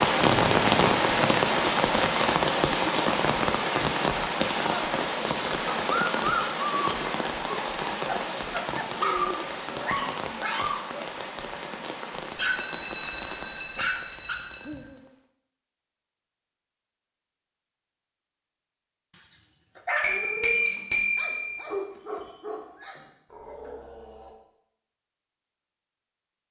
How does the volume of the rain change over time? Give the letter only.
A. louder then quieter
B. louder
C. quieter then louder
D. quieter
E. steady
D.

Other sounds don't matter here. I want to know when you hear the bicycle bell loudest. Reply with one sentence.
The loudest moment of the bicycle bell is at 21 seconds.